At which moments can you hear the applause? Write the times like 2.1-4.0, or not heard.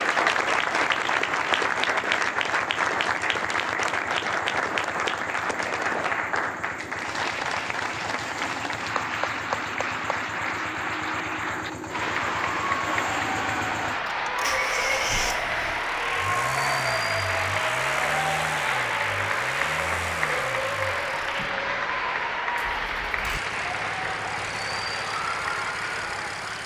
0.0-26.6.